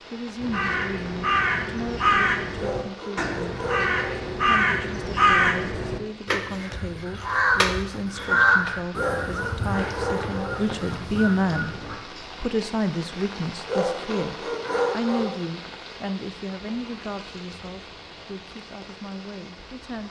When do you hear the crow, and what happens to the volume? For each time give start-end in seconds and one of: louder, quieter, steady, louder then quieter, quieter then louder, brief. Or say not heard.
0.4-11.9 quieter.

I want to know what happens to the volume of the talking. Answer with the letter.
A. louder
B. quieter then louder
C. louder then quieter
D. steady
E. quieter
C.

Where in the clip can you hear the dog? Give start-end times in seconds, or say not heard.
2.5-4.3, 8.9-10.7, 13.7-15.4.